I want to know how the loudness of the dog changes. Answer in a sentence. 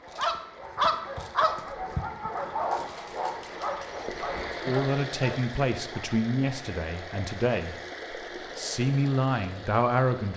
The volume of the dog goes down.